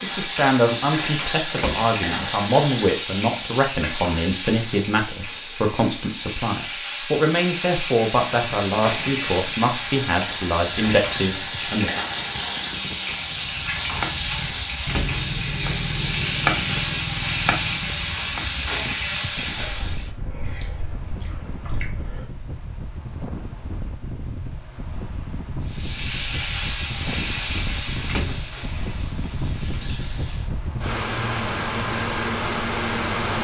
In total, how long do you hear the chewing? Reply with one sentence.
The chewing can be heard for 3 seconds in total.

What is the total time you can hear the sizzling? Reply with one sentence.
You can hear the sizzling for 25 seconds altogether.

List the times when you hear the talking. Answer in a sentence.
You can hear the talking from 0.0 to 12.0 s.